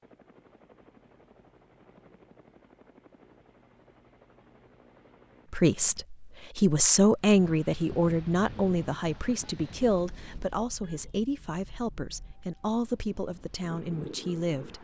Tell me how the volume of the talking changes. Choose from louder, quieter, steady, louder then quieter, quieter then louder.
quieter.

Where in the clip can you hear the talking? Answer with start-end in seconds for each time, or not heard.
5.5-14.7.